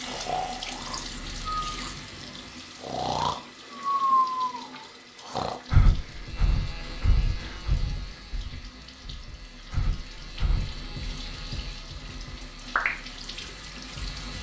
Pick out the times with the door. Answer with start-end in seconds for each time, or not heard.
not heard.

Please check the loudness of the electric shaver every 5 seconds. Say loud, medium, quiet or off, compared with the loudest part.
medium, medium, loud.